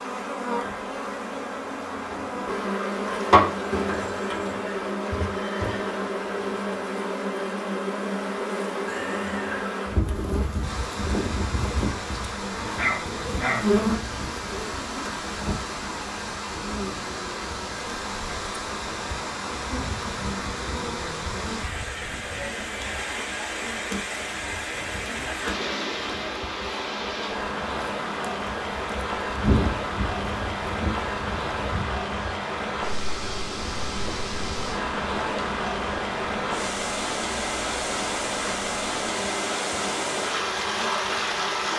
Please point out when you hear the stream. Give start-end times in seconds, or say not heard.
10.6-41.7.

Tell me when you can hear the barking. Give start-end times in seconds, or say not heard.
12.6-13.9.